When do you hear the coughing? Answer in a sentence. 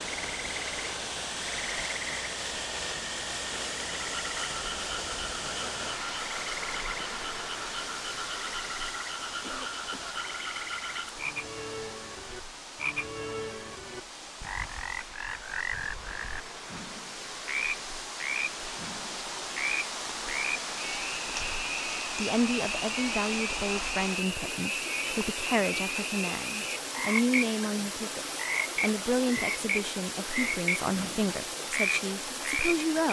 You can hear the coughing from 9.4 to 10.2 s.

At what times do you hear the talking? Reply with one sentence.
The talking can be heard from 22.1 to 33.0 s.